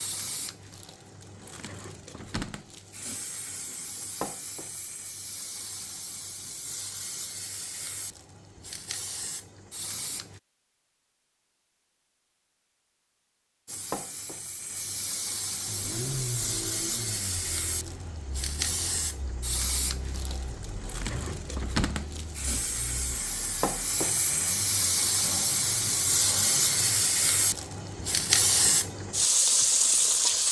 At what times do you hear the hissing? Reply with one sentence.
You can hear the hissing from 0.0 to 10.4 s and from 13.7 to 30.4 s.